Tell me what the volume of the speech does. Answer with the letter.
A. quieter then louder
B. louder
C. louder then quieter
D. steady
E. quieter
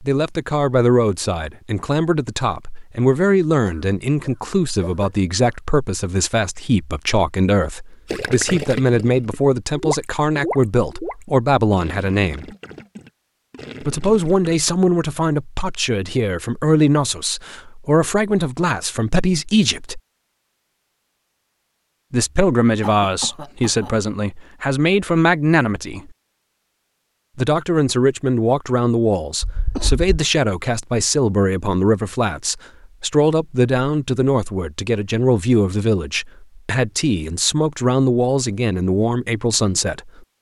D.